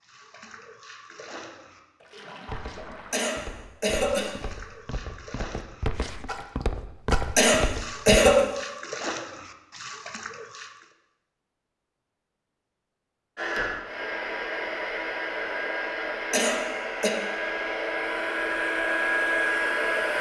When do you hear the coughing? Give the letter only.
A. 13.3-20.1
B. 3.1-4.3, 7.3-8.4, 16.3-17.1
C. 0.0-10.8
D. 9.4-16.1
B.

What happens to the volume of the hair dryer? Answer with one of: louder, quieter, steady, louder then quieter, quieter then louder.
louder.